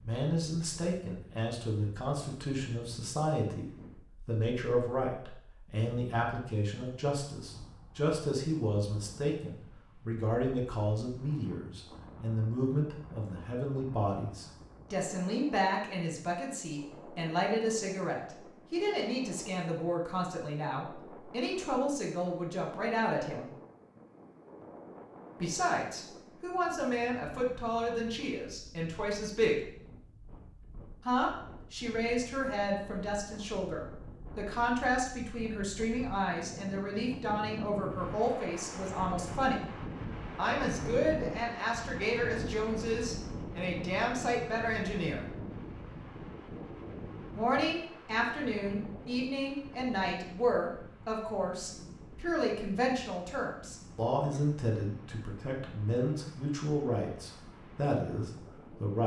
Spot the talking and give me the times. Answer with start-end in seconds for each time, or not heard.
0.0-3.6, 4.2-23.5, 25.4-29.7, 31.1-39.6, 40.4-45.2, 47.4-59.0.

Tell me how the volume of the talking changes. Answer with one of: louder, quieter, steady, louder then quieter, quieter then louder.
steady.